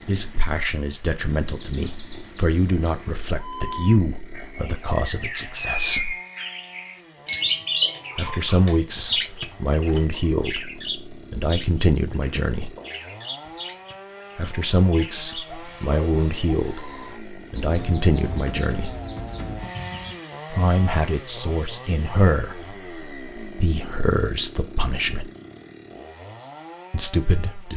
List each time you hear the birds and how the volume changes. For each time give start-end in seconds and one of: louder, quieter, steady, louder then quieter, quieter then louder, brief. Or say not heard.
0.1-20.2 louder then quieter.